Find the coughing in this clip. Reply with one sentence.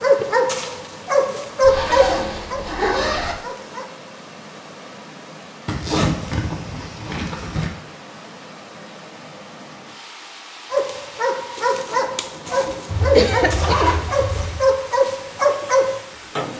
The coughing can be heard from 12.7 to 13.8 s.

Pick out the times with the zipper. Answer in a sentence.
You can hear the zipper from 1.6 to 3.4 s, from 5.7 to 7.7 s and from 12.8 to 14.7 s.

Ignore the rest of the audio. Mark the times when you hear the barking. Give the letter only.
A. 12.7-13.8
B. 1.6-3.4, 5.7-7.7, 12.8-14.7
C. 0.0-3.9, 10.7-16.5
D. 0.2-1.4
C.